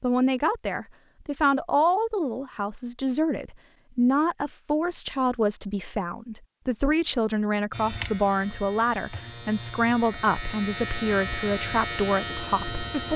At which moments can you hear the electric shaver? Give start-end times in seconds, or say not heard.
7.7-13.1.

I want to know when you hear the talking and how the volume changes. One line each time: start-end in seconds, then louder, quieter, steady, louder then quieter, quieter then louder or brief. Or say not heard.
0.0-13.1 steady.